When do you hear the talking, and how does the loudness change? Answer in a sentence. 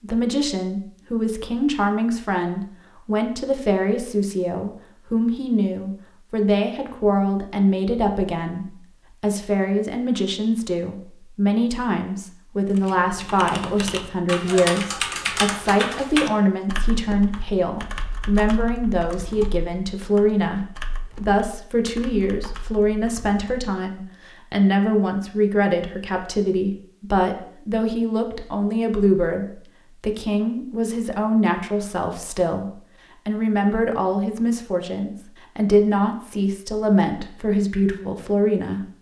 You can hear the talking from 0.0 to 38.9 s, at a steady volume.